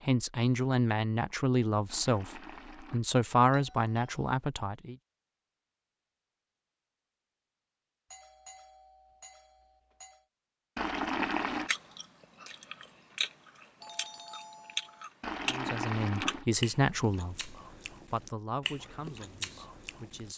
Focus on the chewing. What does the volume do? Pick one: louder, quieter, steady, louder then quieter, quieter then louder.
louder then quieter.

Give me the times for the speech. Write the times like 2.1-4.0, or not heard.
0.1-5.0, 15.5-20.3.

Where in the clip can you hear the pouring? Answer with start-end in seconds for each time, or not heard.
1.9-3.0, 10.8-11.7, 15.2-16.4.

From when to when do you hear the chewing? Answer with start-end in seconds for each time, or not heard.
10.9-20.3.